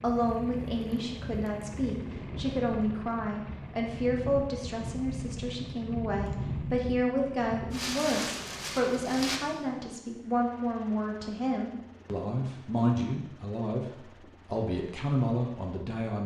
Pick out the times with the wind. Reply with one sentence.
You can hear the wind from 0.0 to 9.4 s.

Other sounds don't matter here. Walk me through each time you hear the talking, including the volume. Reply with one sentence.
The talking can be heard from 0.0 to 16.2 s, at a steady volume.